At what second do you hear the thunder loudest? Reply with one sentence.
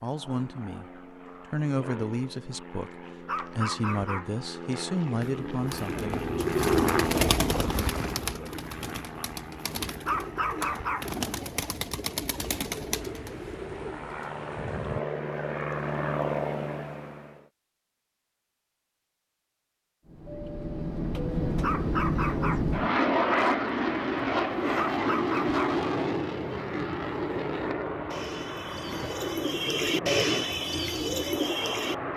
The loudest moment of the thunder is at 15 seconds.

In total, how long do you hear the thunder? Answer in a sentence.
The thunder can be heard for 2 seconds in total.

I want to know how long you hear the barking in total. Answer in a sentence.
The barking can be heard for 4 seconds in total.